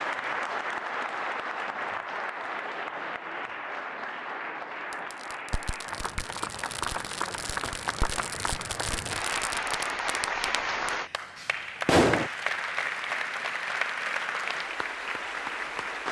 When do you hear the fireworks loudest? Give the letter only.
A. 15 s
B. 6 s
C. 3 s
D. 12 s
D.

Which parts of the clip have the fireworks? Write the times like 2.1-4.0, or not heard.
4.9-12.3.